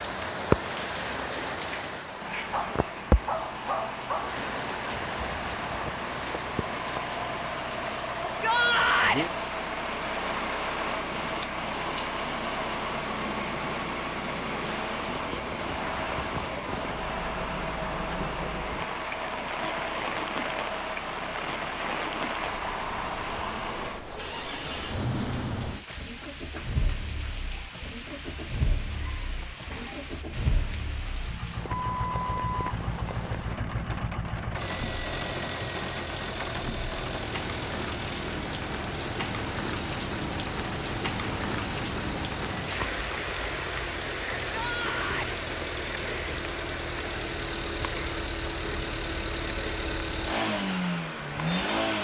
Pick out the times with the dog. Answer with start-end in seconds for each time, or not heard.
2.5-4.4.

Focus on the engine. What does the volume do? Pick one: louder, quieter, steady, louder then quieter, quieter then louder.
steady.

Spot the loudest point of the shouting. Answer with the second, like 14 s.
9 s.